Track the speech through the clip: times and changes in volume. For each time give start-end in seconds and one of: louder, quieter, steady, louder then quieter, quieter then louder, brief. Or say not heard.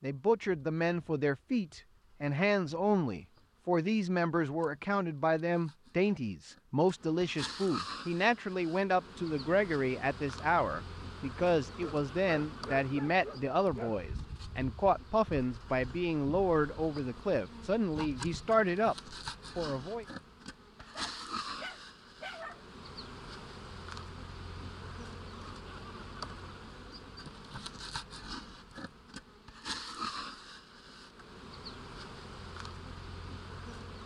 0.0-20.1 steady.